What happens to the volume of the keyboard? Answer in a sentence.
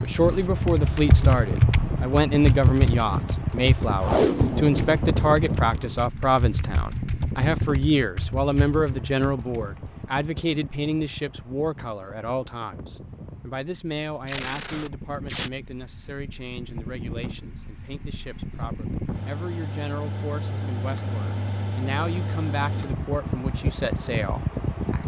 The loudness of the keyboard goes down.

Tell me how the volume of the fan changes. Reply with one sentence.
The volume of the fan goes down, then up.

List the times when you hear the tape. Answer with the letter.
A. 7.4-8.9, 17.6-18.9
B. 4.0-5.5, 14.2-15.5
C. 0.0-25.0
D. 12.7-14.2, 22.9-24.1
B.